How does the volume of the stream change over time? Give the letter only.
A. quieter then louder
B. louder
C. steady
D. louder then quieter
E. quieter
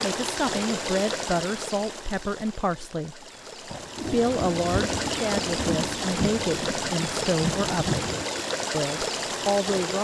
A.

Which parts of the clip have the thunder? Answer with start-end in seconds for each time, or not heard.
3.7-8.2.